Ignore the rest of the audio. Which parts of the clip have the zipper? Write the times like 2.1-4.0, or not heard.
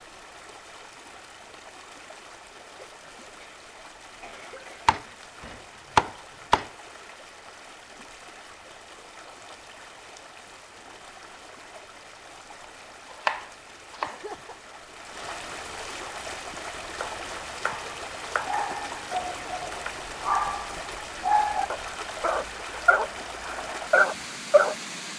not heard.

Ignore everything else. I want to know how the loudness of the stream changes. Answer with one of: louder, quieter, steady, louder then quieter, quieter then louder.
louder.